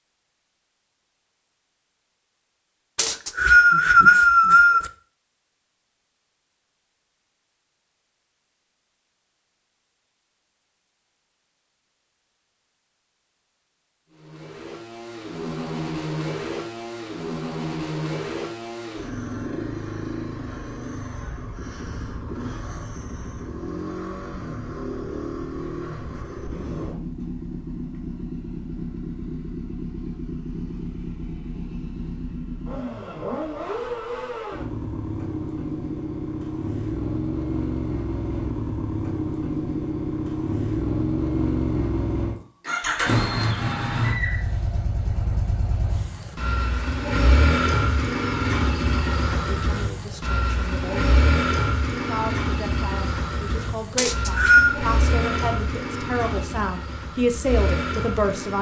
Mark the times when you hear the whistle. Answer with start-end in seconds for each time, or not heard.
3.0-4.8, 54.0-54.8.